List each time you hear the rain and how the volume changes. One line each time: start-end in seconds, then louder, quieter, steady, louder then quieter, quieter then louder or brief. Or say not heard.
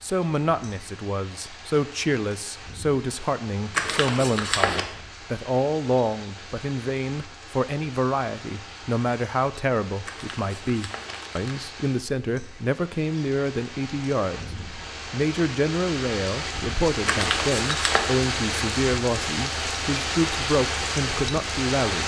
0.0-22.0 louder.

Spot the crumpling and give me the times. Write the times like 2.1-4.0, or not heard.
3.7-4.8, 10.1-11.6, 17.1-18.1.